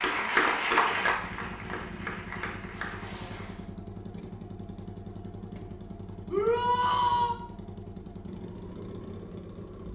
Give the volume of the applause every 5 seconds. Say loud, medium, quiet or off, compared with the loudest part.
loud, off.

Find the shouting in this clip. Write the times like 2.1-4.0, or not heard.
6.2-7.3.